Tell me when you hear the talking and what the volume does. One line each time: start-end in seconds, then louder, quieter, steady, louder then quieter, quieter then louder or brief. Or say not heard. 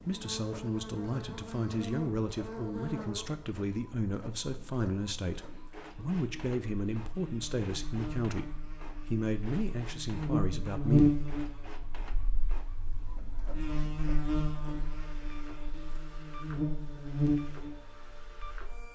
0.1-11.2 steady.